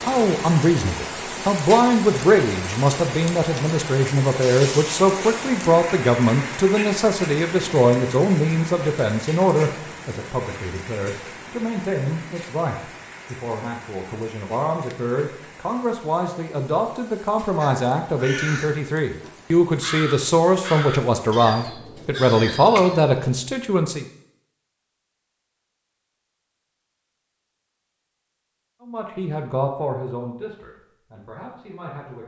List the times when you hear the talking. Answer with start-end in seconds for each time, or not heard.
0.0-24.1, 28.8-32.2.